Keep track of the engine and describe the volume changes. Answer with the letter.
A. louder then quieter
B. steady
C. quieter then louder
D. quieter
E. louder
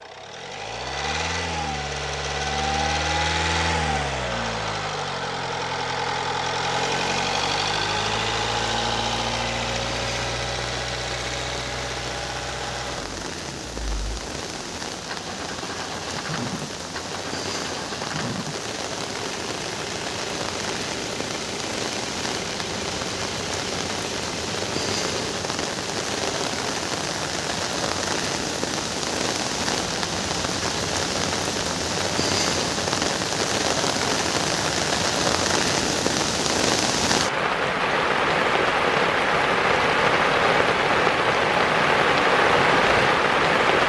D.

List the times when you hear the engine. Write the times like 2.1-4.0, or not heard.
0.0-26.6.